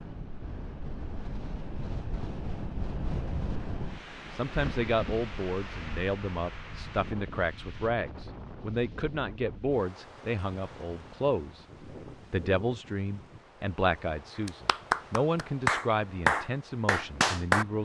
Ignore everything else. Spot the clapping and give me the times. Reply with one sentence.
The clapping can be heard from 14.4 to 17.6 s.